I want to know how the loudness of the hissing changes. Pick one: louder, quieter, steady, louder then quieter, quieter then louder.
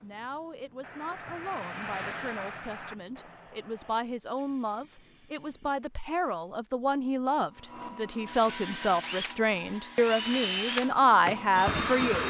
louder then quieter.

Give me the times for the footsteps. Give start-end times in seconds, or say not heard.
not heard.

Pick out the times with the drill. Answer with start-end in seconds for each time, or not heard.
7.5-12.2.